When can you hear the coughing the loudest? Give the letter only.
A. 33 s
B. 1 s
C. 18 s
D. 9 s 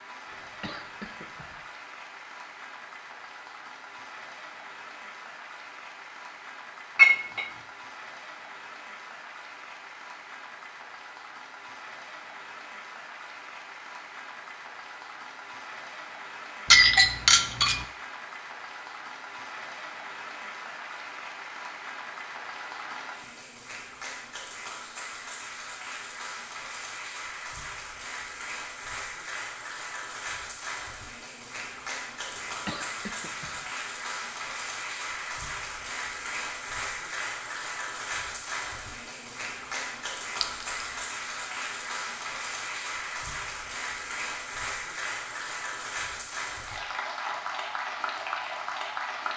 A.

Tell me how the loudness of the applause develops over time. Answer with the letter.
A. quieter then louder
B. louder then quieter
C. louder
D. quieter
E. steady
C.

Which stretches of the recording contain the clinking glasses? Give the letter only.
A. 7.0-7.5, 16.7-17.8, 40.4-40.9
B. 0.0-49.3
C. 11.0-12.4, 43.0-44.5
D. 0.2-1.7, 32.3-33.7
A.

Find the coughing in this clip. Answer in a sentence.
The coughing can be heard from 0.2 to 1.7 s and from 32.3 to 33.7 s.